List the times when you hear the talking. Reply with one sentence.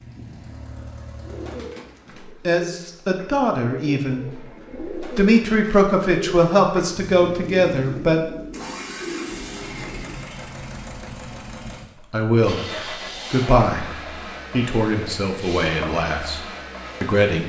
The talking can be heard from 2.2 to 8.3 s and from 12.1 to 17.4 s.